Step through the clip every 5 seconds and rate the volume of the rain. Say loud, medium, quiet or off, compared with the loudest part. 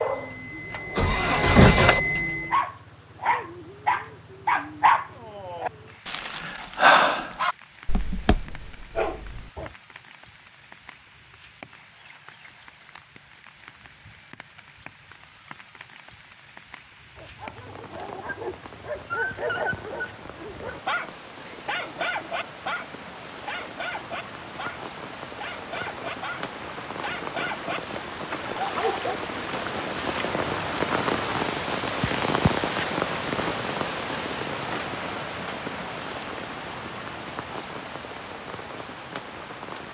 quiet, quiet, quiet, quiet, quiet, medium, loud, medium.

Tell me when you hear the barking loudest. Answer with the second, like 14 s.
7 s.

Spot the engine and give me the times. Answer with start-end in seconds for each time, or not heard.
0.0-2.6.